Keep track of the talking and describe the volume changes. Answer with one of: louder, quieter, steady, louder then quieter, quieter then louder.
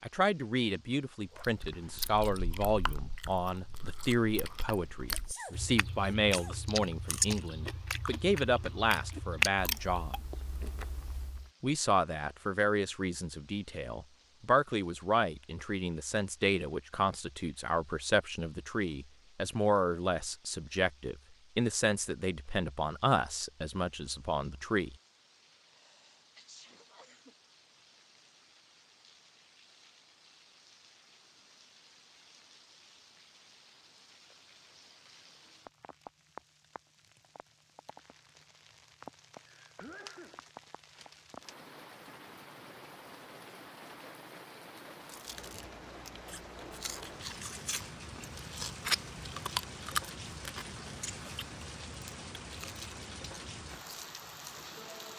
steady.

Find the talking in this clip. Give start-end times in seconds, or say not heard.
0.0-10.2, 11.6-24.9.